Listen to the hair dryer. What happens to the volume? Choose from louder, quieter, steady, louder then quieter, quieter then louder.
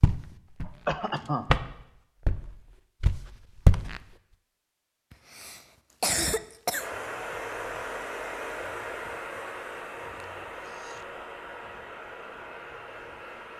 quieter.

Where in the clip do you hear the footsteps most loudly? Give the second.
4 s.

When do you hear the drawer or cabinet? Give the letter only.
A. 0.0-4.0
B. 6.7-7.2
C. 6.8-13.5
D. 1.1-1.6
D.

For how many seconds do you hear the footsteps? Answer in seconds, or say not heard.
4 s.